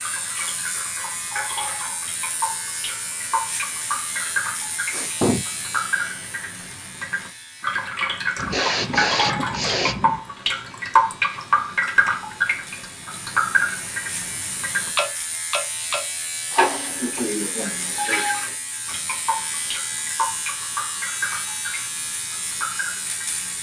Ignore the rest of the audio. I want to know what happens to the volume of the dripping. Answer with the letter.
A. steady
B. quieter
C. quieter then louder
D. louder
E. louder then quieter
E.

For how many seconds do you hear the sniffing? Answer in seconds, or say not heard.
4 s.